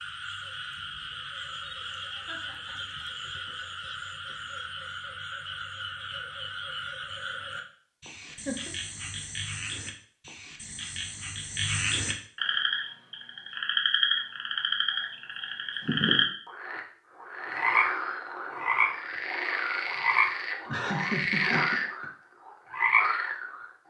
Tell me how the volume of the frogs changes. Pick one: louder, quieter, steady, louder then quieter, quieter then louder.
louder.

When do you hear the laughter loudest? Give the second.
21 s.